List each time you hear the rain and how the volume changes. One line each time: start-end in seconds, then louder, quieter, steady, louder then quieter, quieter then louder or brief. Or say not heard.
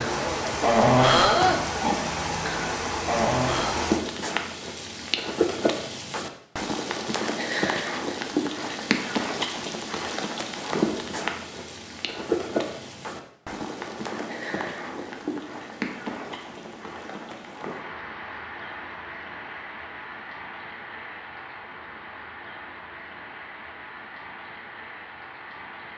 0.0-25.9 quieter.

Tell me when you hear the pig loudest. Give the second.
1 s.